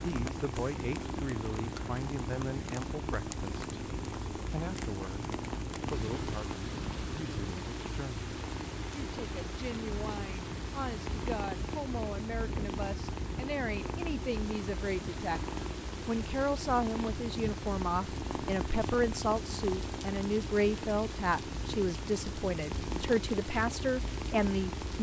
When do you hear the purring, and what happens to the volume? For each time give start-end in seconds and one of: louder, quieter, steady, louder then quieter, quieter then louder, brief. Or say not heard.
0.0-24.9 steady.